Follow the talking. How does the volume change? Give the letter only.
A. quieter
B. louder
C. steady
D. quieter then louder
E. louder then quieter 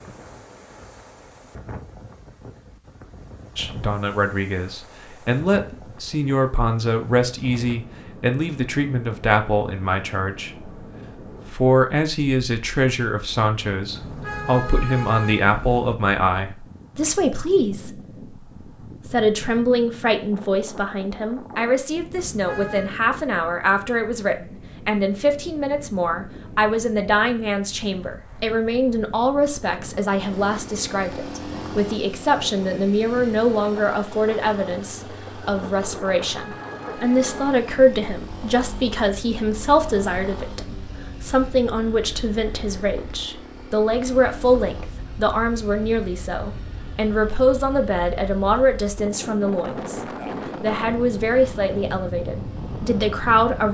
C.